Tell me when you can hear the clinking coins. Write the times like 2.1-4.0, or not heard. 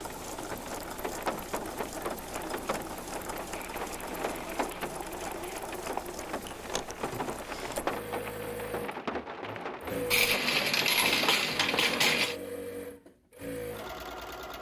3.5-5.7, 10.1-12.3.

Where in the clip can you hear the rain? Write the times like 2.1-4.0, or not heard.
0.0-12.1.